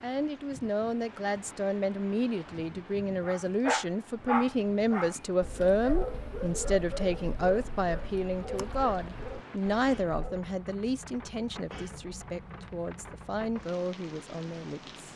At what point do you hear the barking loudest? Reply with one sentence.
The loudest moment of the barking is at 4 seconds.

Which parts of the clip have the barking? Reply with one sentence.
You can hear the barking from 3.2 to 10.5 s.